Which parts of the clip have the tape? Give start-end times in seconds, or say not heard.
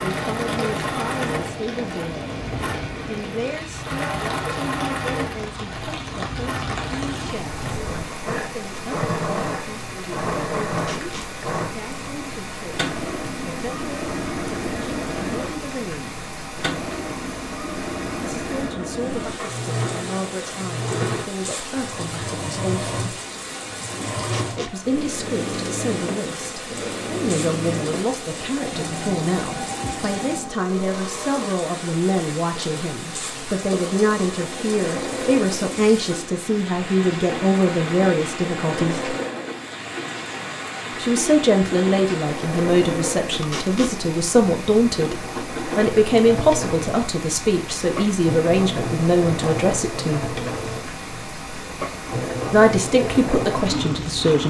10.8-11.3, 24.2-24.8, 43.4-44.0.